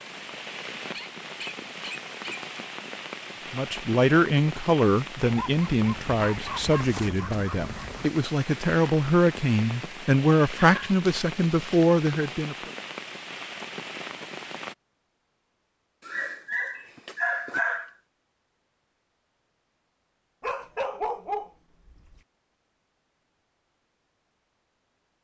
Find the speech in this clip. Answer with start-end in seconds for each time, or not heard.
3.5-12.7.